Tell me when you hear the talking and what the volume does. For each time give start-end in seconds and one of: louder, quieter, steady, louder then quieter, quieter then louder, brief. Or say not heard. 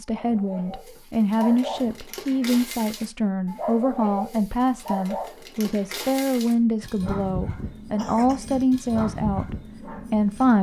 0.0-10.5 steady.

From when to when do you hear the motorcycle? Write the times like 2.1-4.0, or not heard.
not heard.